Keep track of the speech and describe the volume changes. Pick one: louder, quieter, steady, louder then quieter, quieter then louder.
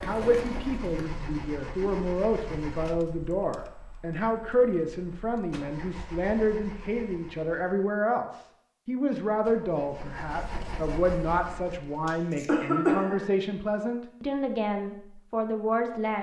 steady.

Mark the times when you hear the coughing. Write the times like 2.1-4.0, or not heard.
12.1-13.3.